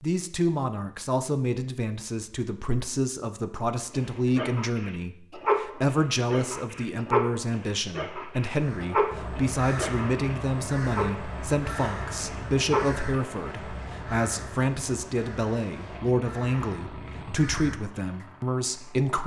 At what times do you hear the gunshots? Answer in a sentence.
The gunshots can't be heard in this clip.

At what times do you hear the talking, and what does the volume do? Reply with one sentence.
The talking can be heard from 0.0 to 19.2 s, at a steady volume.